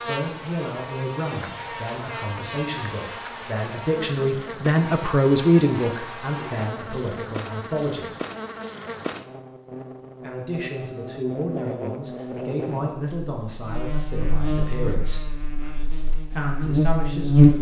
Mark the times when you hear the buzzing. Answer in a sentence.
The buzzing can be heard from 0.0 to 17.5 s.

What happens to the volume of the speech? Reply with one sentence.
The volume of the speech goes up, then down.